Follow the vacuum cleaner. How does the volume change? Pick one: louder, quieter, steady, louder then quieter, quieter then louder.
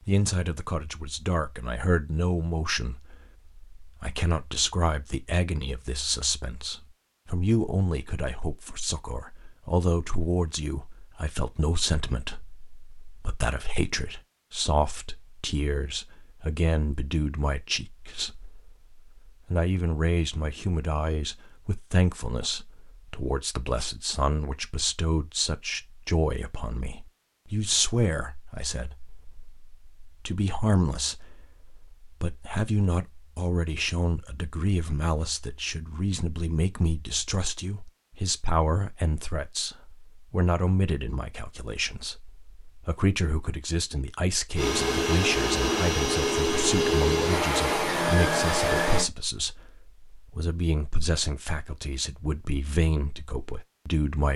steady.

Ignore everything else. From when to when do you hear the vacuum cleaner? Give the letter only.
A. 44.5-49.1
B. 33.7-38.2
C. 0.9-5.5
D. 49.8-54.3
A.